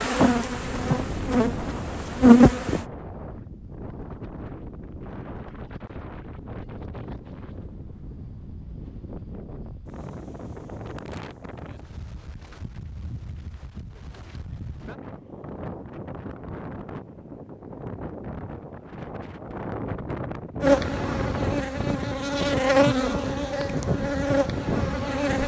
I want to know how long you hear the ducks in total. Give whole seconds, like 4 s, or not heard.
not heard.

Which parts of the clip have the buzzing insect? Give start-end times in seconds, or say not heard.
0.0-2.9, 20.6-25.4.